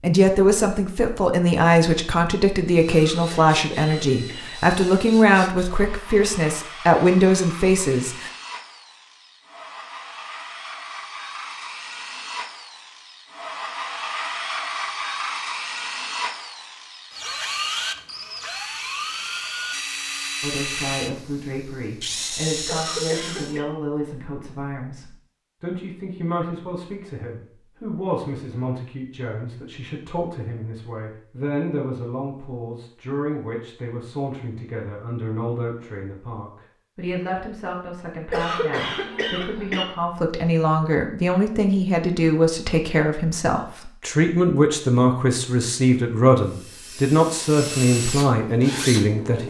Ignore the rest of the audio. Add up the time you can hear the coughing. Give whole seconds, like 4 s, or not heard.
4 s.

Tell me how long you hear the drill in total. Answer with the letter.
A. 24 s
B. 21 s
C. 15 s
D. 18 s
A.